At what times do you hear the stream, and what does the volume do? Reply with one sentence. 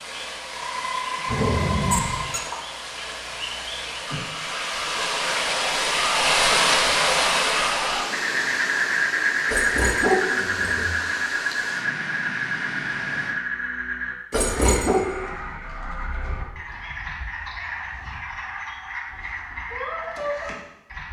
The stream can be heard from 0.0 to 13.3 s, getting louder then quieter.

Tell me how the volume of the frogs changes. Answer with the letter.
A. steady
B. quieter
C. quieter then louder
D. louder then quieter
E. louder
D.